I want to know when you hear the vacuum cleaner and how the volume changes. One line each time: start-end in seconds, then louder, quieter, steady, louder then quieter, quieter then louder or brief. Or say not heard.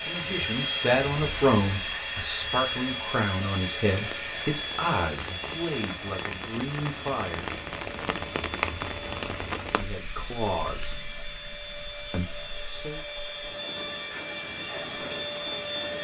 0.0-15.9 quieter then louder.